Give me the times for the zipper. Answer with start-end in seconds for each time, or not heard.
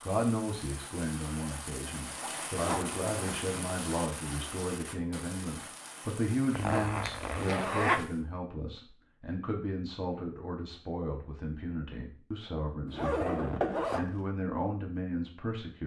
2.2-3.8, 6.5-8.1, 12.8-14.1.